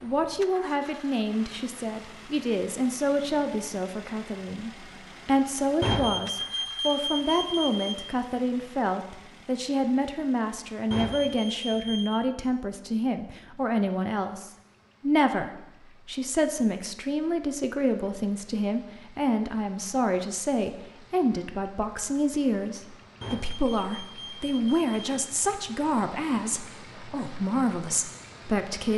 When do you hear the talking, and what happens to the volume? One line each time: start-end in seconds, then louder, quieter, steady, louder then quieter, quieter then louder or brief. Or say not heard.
0.0-28.9 steady.